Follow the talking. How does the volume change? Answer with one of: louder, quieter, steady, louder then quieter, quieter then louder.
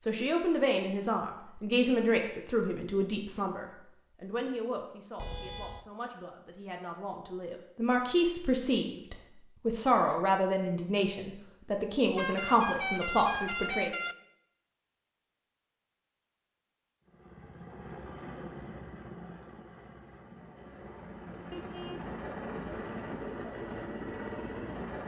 quieter then louder.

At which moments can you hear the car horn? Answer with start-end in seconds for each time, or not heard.
5.2-5.8, 12.2-14.2, 21.5-22.1.